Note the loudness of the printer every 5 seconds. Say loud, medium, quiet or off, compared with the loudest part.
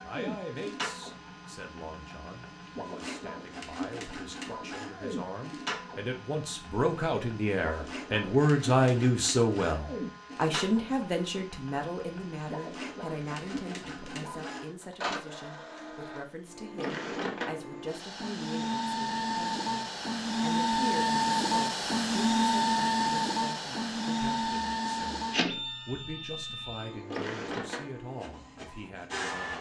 quiet, quiet, quiet, medium, loud, medium.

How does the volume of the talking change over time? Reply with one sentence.
The volume of the talking goes up, then down.